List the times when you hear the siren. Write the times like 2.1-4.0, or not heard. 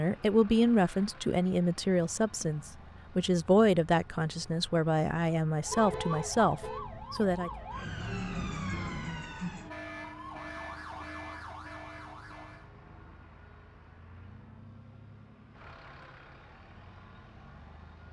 5.6-12.7.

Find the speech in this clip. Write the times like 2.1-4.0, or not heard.
0.0-7.5.